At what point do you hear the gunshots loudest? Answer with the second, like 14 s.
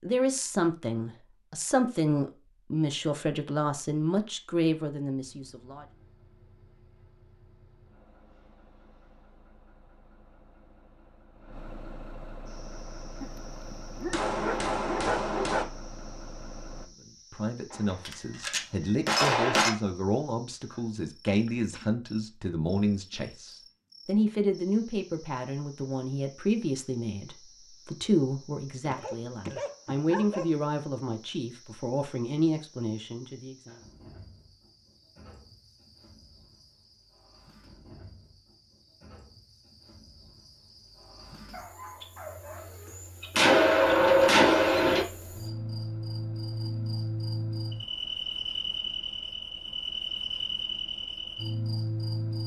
44 s.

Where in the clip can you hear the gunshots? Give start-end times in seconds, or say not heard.
14.1-15.7, 17.7-19.7, 43.4-45.0.